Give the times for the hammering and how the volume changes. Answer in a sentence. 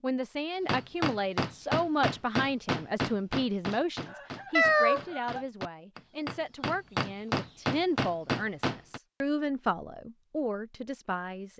You can hear the hammering from 0.7 to 9.0 s, getting quieter then louder.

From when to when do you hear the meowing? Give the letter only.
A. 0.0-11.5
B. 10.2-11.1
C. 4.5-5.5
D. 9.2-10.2
C.